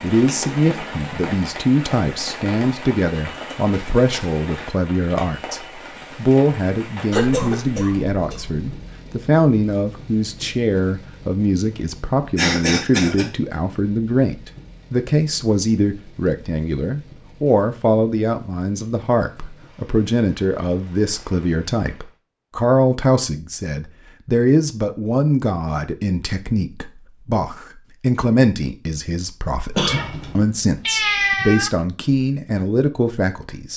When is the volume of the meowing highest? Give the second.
31 s.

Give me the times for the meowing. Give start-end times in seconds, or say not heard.
29.9-31.7.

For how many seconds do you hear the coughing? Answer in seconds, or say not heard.
3 s.